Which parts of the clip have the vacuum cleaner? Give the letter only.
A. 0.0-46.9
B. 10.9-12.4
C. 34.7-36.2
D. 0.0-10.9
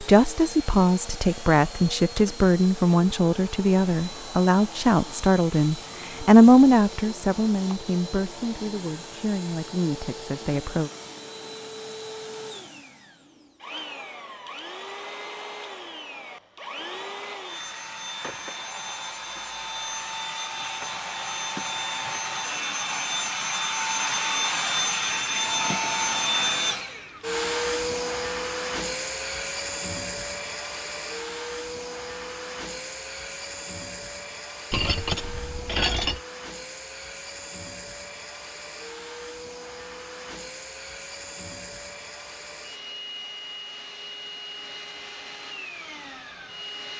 A.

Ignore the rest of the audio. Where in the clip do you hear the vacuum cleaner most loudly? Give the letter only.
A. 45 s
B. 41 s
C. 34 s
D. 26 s
D.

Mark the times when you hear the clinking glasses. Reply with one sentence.
The clinking glasses can be heard from 34.7 to 36.2 s.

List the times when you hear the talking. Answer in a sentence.
You can hear the talking from 0.0 to 10.9 s.